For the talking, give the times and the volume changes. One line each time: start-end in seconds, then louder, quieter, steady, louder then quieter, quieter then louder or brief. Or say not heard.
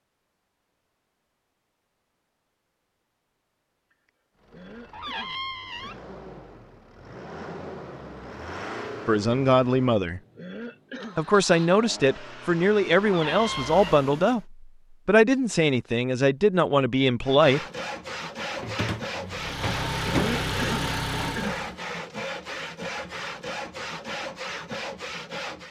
9.1-10.2 brief
11.2-17.6 steady.